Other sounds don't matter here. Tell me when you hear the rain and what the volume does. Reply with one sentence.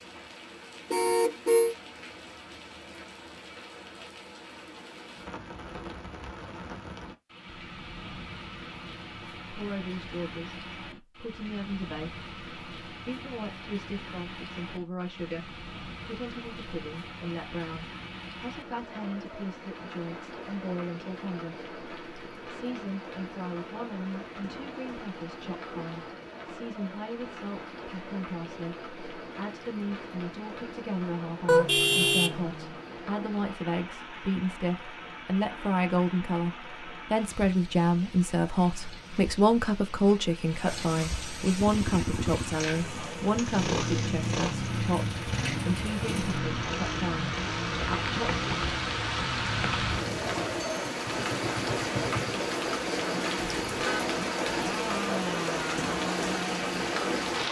The rain can be heard from 0.0 to 57.4 s, getting louder.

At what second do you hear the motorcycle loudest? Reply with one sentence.
The volume of the motorcycle peaks at 44 seconds.